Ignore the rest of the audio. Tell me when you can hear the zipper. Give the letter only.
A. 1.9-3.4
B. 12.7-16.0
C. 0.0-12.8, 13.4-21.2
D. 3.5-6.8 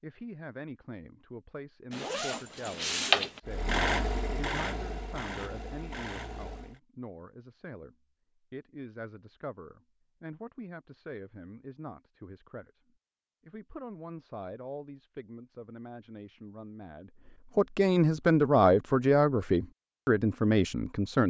A.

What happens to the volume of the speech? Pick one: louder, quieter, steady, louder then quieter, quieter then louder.
louder.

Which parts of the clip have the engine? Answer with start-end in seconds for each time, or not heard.
3.5-6.8.